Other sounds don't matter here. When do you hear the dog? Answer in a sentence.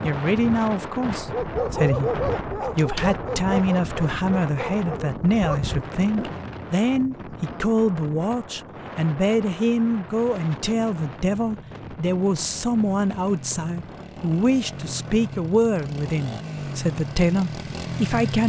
The dog can be heard from 1.1 to 6.5 s.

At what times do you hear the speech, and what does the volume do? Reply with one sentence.
You can hear the speech from 0.0 to 18.4 s, at a steady volume.